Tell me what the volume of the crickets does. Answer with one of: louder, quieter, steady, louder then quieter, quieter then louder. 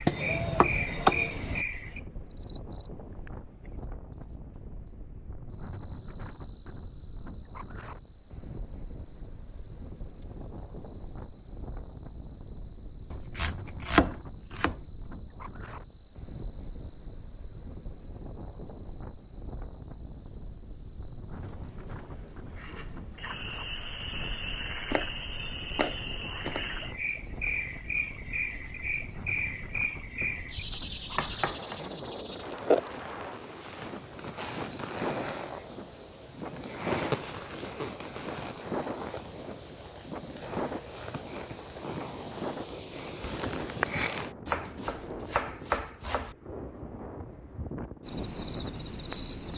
steady.